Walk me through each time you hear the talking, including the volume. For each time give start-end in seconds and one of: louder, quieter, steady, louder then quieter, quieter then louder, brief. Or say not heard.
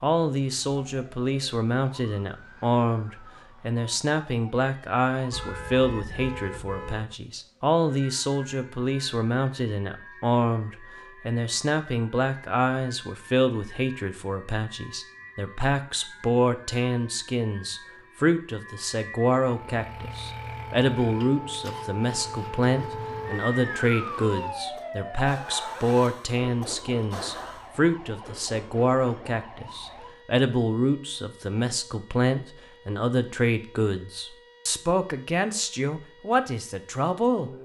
0.0-37.5 steady.